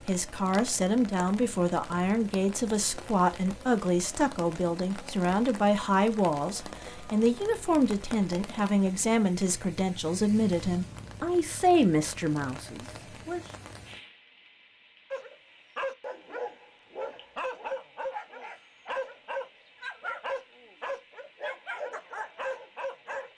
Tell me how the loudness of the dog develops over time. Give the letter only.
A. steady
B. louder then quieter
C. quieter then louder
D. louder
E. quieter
A.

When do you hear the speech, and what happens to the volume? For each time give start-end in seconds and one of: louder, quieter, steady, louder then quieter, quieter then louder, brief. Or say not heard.
0.1-13.4 steady.